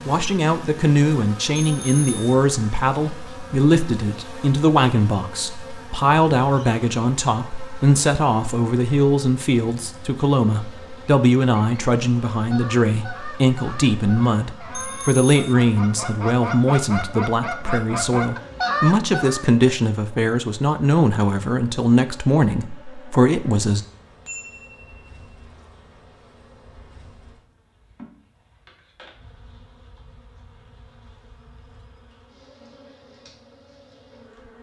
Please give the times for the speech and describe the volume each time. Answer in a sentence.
You can hear the speech from 0.1 to 23.8 s, at a steady volume.